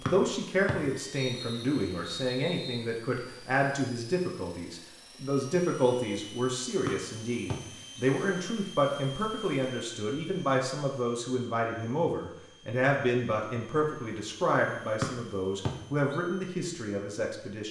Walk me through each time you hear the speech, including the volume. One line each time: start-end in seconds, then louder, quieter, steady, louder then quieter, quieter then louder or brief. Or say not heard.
0.0-17.6 steady.